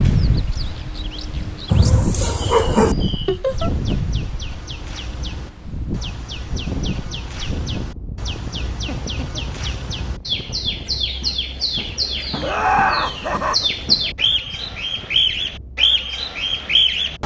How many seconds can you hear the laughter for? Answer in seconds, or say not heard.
2 s.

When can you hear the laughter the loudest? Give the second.
13 s.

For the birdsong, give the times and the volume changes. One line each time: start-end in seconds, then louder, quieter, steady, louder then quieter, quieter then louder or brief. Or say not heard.
0.1-17.2 louder.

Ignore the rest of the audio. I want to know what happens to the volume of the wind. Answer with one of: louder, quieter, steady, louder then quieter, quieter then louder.
quieter.